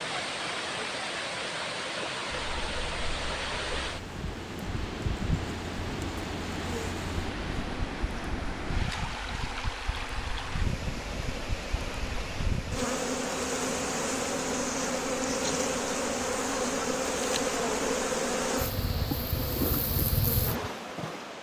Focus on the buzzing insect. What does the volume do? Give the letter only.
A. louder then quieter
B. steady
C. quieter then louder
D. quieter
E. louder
E.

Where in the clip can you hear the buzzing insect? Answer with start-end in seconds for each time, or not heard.
2.3-21.3.